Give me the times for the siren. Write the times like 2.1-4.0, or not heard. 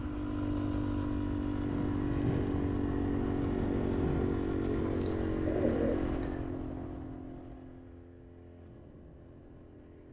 not heard.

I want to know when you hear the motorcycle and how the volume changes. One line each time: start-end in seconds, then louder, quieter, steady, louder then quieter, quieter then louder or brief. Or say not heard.
0.0-10.0 quieter.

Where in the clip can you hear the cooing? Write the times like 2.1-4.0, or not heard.
4.6-6.4.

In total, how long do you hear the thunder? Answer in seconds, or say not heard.
3 s.